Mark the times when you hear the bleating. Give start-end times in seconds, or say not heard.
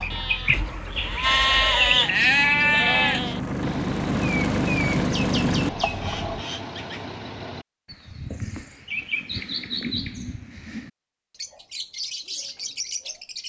0.0-3.4.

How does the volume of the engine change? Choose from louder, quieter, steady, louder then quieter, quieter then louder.
louder.